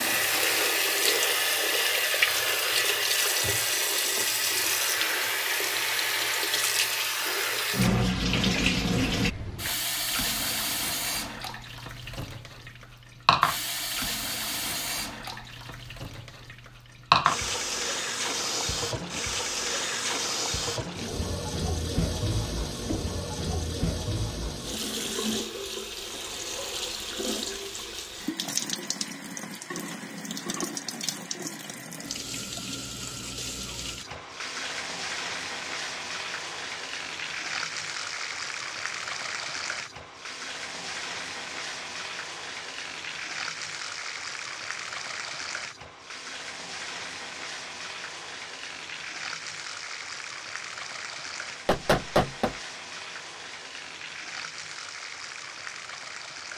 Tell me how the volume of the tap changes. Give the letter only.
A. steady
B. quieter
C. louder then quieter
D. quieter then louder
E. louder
B.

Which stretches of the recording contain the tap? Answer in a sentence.
The tap can be heard from 0.0 to 56.5 s.